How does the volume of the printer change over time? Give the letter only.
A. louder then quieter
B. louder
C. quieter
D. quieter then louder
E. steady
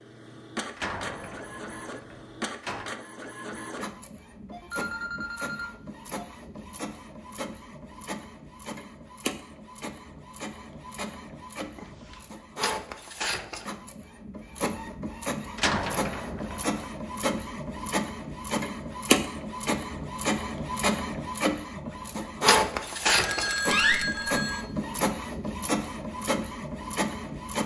B.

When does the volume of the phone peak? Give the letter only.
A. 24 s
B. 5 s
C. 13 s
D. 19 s
A.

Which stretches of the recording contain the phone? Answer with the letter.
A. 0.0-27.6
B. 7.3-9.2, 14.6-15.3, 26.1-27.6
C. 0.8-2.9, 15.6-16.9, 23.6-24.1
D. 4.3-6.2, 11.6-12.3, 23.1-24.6
D.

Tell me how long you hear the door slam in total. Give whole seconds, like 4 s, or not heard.
4 s.